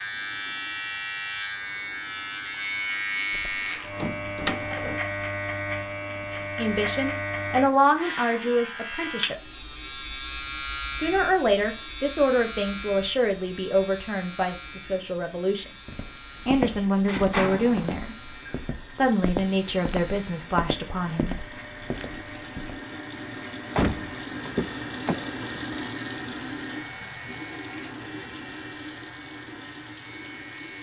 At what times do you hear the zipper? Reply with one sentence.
You can't hear the zipper here.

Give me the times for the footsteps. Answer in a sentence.
The footsteps can be heard from 15.8 to 22.8 s.